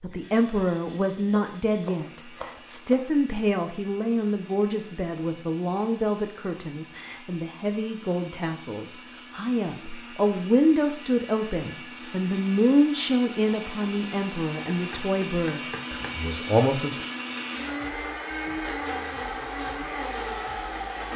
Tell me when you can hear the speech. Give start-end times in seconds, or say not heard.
0.0-17.1.